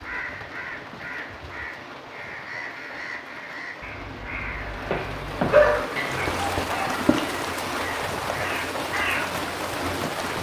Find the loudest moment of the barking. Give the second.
6 s.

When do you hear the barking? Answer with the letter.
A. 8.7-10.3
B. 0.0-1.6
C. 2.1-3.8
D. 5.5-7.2
D.